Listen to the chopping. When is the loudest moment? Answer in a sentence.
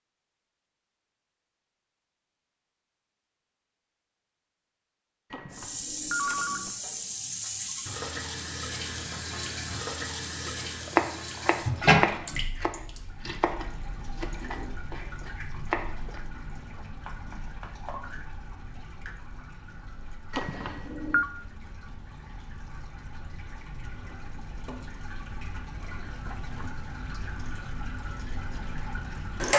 The volume of the chopping peaks at 11 seconds.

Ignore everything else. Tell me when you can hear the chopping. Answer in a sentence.
The chopping can be heard from 10.4 to 16.2 s.